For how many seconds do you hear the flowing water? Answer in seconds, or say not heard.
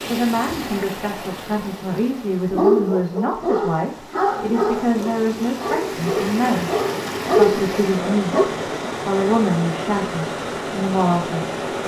12 s.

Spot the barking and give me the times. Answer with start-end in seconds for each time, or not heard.
2.5-8.5.